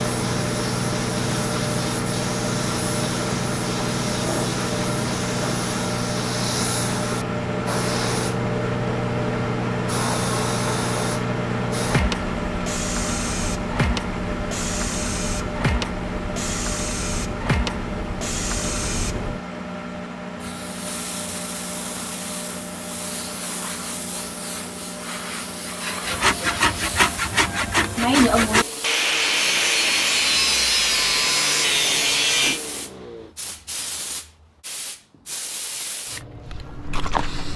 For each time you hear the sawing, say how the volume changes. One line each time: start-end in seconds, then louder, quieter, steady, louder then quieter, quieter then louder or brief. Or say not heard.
26.1-32.6 steady.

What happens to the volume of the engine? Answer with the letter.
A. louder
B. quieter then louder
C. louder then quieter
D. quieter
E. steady
D.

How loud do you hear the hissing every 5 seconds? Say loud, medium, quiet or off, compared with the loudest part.
loud, loud, loud, loud, medium, medium, medium, medium.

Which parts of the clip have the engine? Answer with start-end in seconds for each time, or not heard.
0.0-33.4.